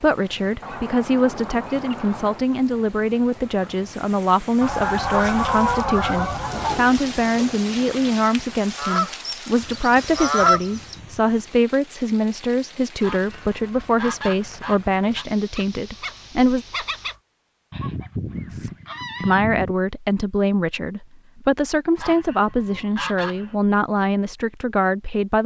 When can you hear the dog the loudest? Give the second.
17 s.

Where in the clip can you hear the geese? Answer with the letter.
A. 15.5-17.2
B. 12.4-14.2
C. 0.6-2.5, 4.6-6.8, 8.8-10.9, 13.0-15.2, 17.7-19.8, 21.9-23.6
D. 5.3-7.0
C.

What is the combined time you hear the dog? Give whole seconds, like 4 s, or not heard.
2 s.